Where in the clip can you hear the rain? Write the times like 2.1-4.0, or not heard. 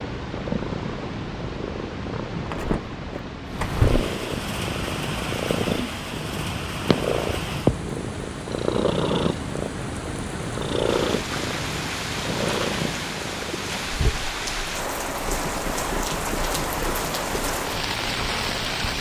3.5-18.9.